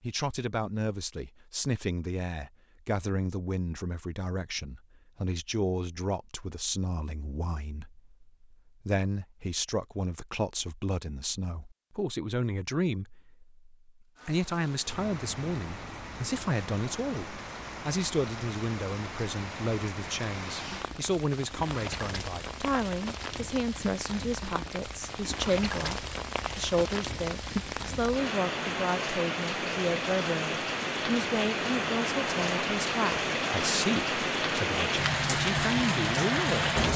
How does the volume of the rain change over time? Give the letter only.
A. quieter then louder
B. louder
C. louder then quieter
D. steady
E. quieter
B.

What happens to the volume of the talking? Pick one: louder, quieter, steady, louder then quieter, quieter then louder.
steady.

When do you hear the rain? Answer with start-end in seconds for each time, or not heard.
14.2-36.9.